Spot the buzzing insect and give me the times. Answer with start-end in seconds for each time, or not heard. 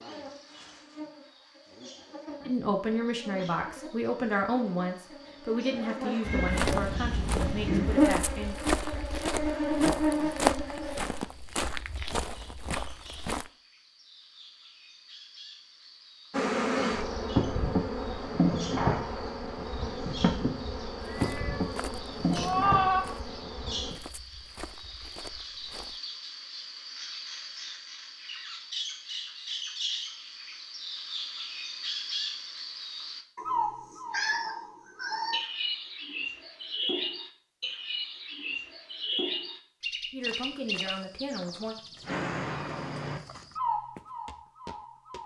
0.0-11.2, 16.3-23.9.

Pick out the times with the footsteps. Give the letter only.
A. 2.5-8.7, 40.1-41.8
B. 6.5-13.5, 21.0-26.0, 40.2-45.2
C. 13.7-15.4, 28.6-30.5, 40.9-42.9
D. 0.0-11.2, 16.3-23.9
B.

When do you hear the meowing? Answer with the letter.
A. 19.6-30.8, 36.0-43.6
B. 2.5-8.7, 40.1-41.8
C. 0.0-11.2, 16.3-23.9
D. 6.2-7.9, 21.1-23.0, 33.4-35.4
D.